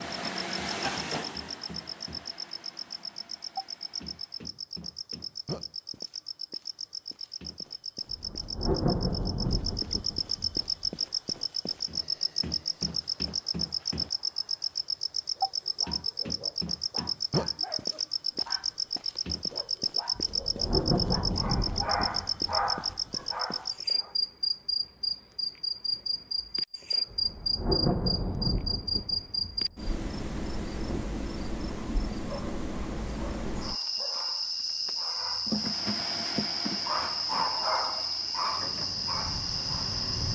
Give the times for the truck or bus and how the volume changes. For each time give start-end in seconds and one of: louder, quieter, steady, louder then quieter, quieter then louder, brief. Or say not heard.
0.0-4.5 quieter
35.5-40.3 quieter then louder.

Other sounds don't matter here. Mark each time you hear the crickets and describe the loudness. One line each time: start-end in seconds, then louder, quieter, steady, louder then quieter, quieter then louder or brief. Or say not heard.
0.0-40.3 louder.